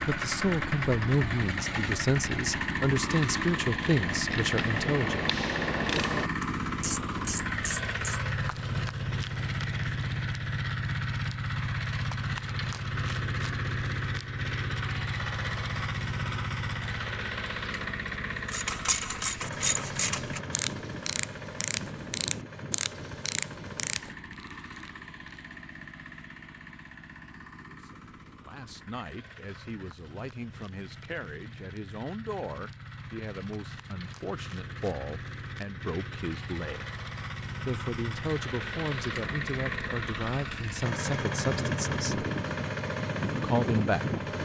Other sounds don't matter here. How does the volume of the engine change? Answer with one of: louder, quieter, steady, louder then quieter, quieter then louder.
quieter then louder.